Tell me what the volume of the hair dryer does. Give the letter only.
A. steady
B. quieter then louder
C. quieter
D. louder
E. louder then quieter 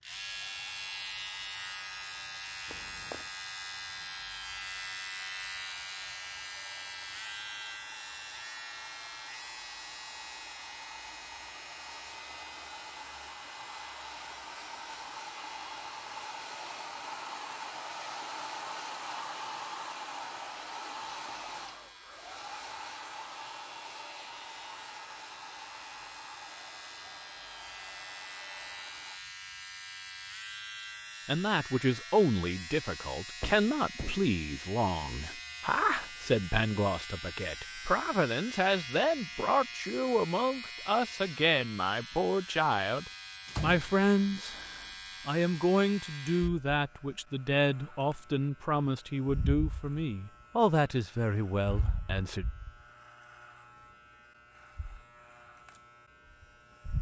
E.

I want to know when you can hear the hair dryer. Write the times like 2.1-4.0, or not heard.
0.1-29.2.